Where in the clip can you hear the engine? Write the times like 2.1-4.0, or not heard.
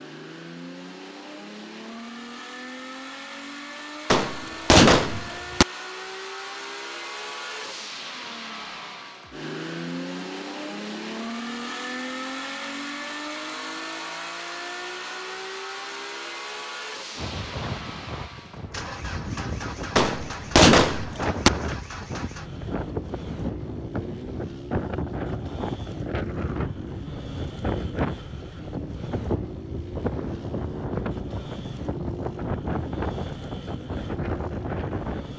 0.0-35.3.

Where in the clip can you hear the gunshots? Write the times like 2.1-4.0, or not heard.
4.1-5.7, 19.9-21.5.